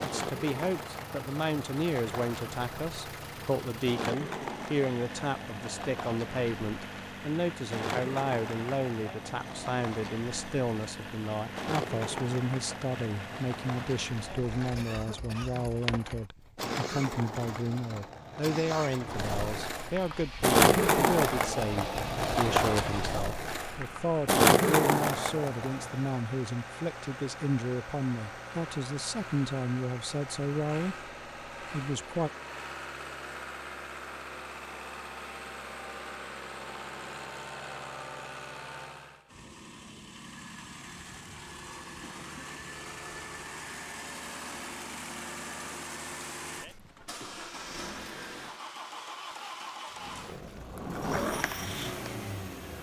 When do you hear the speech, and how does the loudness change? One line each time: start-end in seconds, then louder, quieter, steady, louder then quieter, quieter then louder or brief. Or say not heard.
0.0-32.3 steady.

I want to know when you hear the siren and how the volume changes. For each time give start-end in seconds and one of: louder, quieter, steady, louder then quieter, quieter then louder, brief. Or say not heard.
not heard.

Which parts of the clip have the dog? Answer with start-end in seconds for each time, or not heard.
not heard.